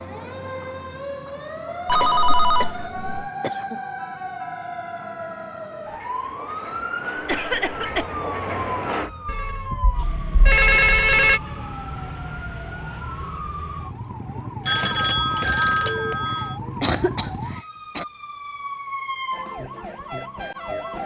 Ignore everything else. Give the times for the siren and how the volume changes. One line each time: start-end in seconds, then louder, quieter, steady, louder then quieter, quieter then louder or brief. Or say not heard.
0.0-21.0 steady.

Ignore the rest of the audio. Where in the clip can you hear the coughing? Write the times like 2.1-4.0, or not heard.
2.0-3.8, 7.2-8.1, 16.2-18.1.